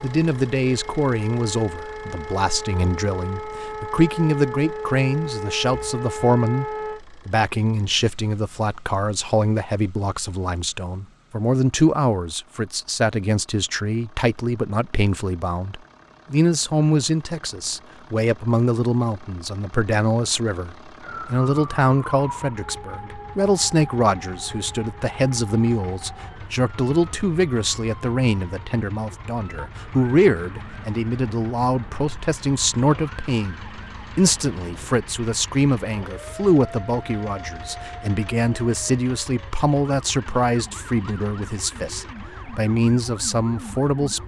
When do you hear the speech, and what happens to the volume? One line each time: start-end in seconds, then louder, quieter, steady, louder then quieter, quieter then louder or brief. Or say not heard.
0.0-44.2 steady.